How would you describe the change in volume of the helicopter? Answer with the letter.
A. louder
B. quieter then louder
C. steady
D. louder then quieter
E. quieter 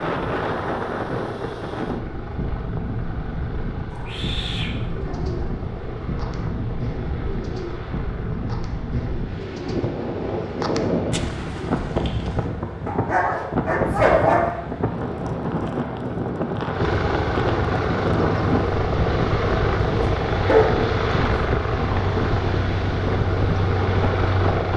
A.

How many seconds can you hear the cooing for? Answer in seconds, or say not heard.
8 s.